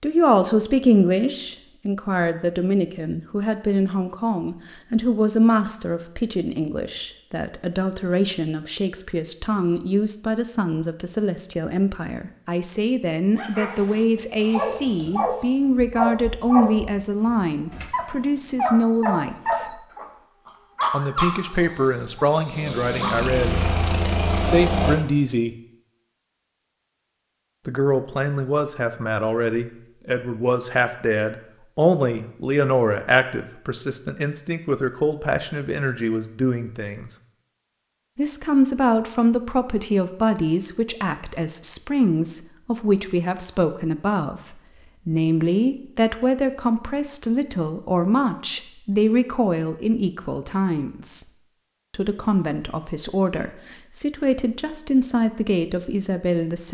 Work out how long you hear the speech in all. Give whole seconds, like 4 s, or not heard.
51 s.